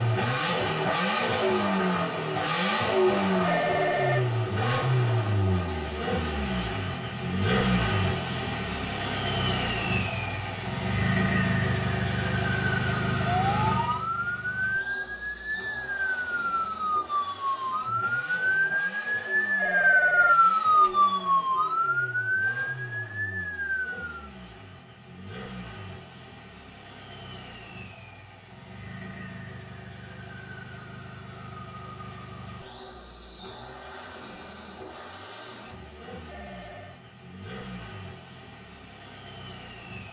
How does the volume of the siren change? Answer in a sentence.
The loudness of the siren goes up, then down.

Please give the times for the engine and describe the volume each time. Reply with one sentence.
You can hear the engine from 0.0 to 40.0 s, getting quieter.